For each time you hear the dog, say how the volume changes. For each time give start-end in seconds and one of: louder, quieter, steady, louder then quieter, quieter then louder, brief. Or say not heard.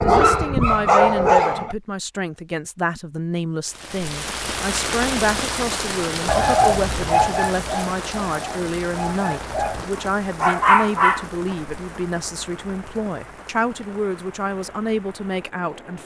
0.0-1.8 brief
6.2-11.6 quieter then louder.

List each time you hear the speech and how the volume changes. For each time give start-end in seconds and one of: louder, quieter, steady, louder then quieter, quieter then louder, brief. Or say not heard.
0.0-16.0 steady.